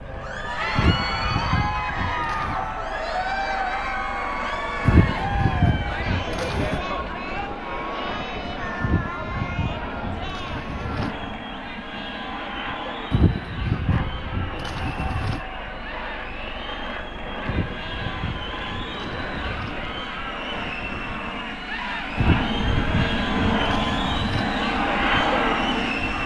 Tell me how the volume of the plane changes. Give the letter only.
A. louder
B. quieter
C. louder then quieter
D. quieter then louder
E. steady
A.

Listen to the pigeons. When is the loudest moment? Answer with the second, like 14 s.
5 s.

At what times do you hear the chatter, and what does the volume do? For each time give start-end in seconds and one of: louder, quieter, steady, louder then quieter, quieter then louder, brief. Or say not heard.
0.1-26.2 quieter then louder.